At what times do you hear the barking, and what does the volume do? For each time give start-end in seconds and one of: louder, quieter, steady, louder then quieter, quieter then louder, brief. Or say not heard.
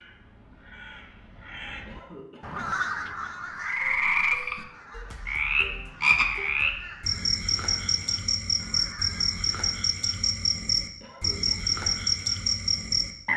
not heard.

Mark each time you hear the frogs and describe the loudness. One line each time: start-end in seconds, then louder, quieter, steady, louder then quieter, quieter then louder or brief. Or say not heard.
3.5-13.3 steady.